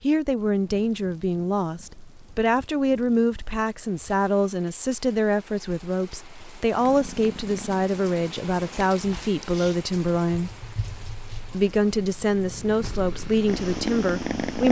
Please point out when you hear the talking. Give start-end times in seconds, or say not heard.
0.0-10.6, 11.5-14.6.